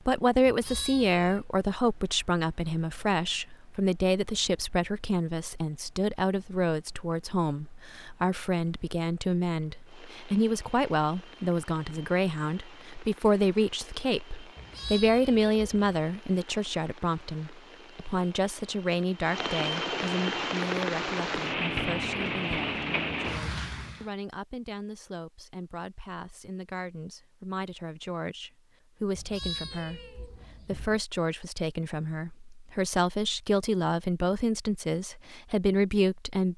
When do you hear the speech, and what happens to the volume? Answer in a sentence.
You can hear the speech from 0.0 to 36.5 s, getting quieter then louder.